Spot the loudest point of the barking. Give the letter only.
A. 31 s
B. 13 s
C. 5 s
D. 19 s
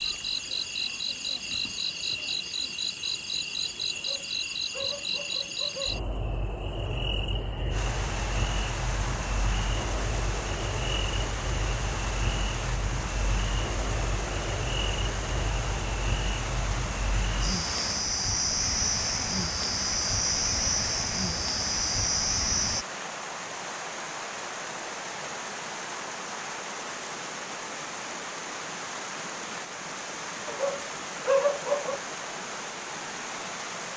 A.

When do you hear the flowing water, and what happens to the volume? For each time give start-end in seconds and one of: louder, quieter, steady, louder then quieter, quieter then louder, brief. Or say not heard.
7.7-33.9 steady.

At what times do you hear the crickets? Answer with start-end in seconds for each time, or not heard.
0.0-22.9.